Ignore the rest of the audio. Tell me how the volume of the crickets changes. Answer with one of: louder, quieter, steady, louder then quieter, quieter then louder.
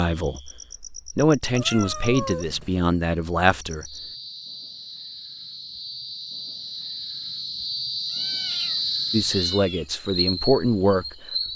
louder.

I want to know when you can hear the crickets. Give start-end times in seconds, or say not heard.
0.0-11.5.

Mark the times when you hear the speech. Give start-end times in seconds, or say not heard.
0.0-4.0, 9.1-11.5.